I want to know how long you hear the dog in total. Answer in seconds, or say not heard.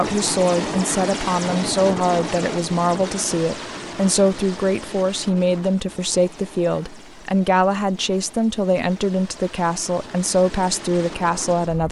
not heard.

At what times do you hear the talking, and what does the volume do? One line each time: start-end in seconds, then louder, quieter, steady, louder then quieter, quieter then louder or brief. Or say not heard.
0.0-11.8 steady.